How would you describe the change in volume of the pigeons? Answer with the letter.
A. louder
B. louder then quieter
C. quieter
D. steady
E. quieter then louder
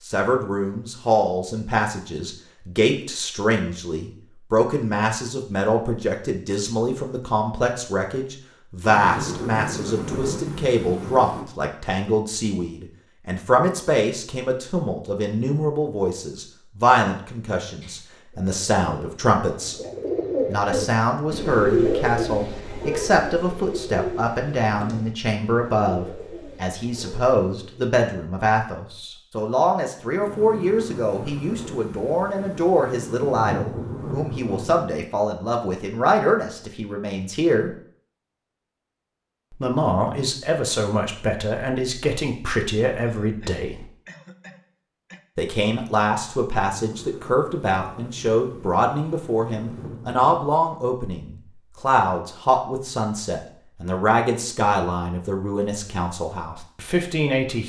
B.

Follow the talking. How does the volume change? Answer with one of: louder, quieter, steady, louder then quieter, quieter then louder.
steady.